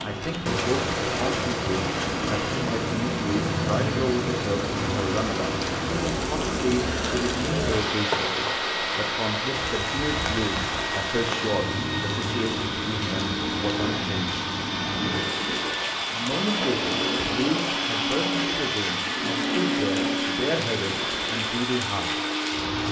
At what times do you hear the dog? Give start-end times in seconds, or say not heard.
not heard.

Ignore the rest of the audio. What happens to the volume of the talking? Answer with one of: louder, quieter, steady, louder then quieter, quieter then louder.
steady.